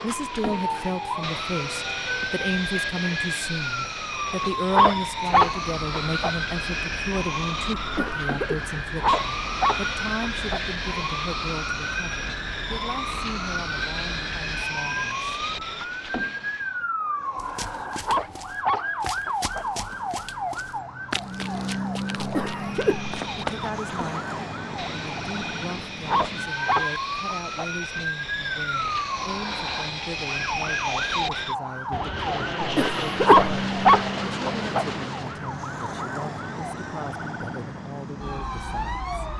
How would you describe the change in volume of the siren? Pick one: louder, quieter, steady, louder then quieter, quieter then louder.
steady.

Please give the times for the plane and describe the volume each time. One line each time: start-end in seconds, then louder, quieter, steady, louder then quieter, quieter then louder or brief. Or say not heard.
0.0-16.8 steady
22.5-35.5 louder.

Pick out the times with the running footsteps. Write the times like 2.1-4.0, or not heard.
17.4-23.6.